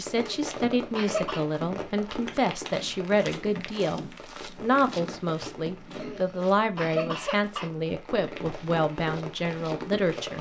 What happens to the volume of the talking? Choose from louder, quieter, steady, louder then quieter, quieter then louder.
steady.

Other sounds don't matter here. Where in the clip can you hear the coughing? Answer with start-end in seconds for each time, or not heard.
0.1-1.4, 5.9-7.7.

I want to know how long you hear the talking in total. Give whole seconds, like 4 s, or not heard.
10 s.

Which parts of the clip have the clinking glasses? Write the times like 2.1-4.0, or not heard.
not heard.